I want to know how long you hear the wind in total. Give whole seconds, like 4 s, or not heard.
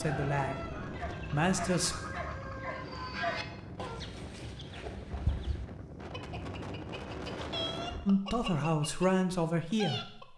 8 s.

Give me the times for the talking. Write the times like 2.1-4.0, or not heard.
0.0-1.9, 8.1-10.3.